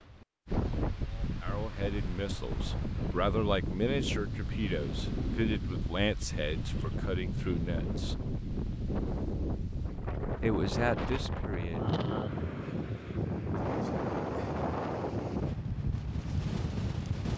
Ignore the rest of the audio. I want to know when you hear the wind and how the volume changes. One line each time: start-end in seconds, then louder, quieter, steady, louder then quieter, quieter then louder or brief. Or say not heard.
0.0-17.3 steady.